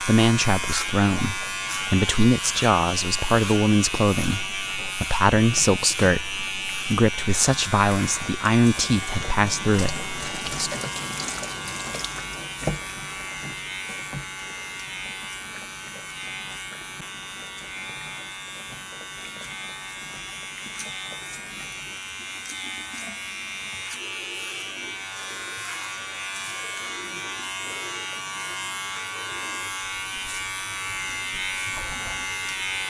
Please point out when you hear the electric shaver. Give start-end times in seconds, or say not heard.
0.0-32.8.